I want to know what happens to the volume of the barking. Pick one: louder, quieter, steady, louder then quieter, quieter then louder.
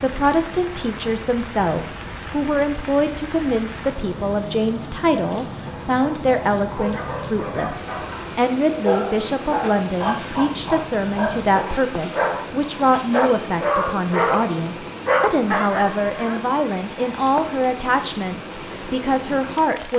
louder.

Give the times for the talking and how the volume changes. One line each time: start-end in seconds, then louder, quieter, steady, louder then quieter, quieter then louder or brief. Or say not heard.
0.0-19.9 steady.